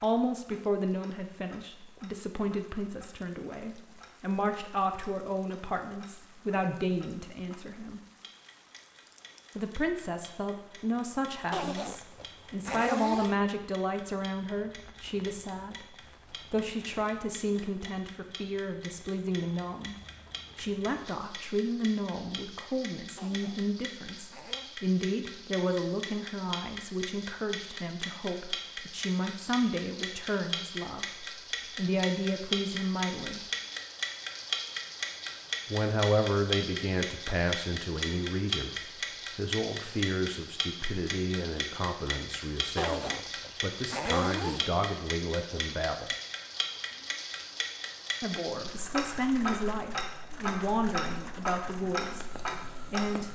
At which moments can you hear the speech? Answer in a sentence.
The speech can be heard from 0.0 to 8.0 s, from 9.6 to 19.9 s, from 20.6 to 33.4 s, from 35.6 to 46.1 s and from 48.2 to 53.3 s.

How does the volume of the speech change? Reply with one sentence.
The volume of the speech stays about the same.